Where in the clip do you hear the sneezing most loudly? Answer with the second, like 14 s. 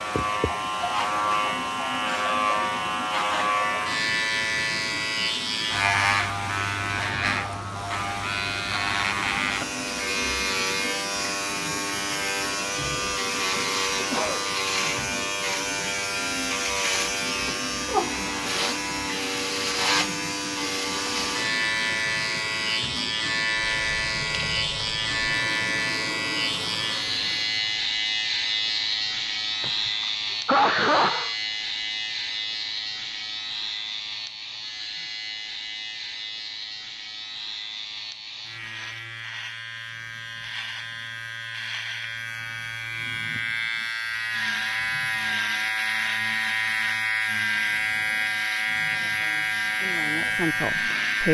31 s.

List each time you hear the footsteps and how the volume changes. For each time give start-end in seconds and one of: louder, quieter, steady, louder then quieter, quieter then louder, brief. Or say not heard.
not heard.